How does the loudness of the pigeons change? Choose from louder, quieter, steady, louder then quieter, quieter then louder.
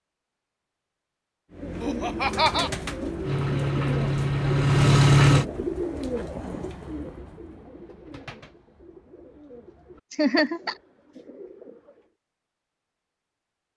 quieter.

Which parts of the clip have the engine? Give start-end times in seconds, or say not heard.
3.2-5.5.